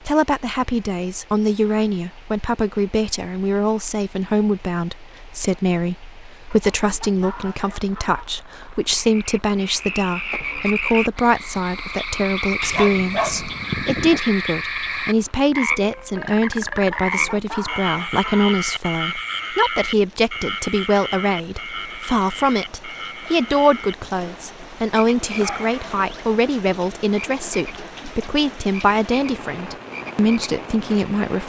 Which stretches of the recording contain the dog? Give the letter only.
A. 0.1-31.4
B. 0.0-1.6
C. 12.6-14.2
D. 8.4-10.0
C.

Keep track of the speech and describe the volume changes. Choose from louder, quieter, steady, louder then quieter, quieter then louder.
steady.